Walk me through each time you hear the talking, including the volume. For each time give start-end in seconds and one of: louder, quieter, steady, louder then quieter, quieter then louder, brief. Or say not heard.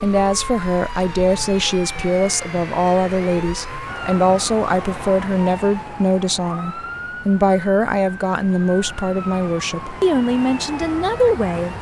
0.0-11.7 steady.